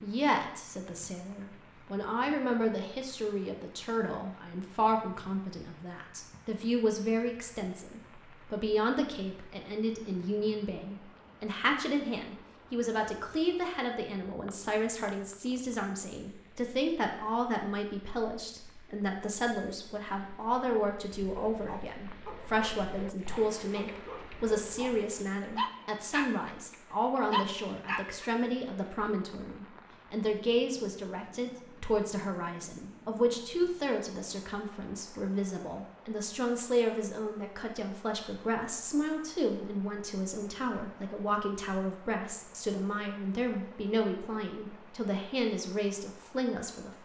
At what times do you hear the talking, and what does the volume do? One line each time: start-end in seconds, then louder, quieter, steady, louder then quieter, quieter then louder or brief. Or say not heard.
0.0-46.9 steady.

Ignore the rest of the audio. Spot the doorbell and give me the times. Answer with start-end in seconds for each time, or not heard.
not heard.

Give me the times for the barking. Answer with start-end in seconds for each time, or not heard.
21.1-26.6, 27.3-28.3.